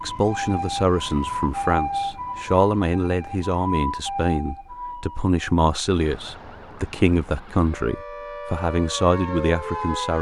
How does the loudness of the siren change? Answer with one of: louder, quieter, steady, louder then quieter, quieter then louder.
quieter then louder.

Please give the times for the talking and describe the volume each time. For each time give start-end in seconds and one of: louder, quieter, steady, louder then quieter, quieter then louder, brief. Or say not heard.
0.0-10.1 steady.